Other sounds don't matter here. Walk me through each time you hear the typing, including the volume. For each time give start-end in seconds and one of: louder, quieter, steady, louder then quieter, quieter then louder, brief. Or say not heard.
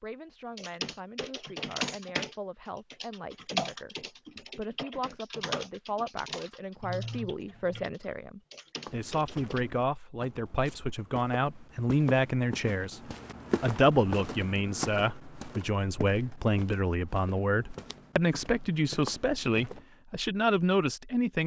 0.6-9.7 quieter.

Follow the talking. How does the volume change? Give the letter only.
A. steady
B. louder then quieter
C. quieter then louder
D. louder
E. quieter
D.